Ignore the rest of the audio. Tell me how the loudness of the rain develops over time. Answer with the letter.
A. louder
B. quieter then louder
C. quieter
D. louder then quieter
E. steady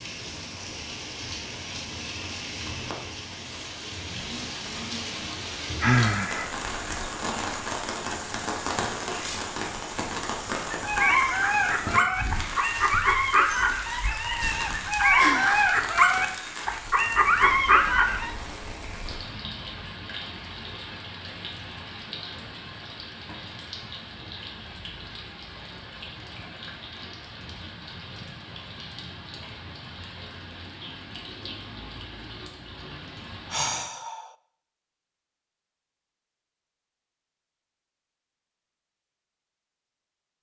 C.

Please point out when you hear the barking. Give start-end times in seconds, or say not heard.
10.7-18.3.